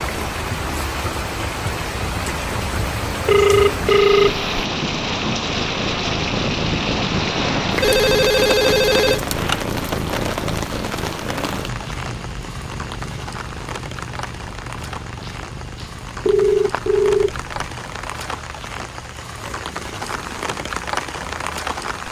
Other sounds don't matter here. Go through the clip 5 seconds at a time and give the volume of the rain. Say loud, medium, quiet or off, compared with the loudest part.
loud, loud, medium, medium, loud.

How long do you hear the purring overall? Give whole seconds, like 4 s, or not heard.
22 s.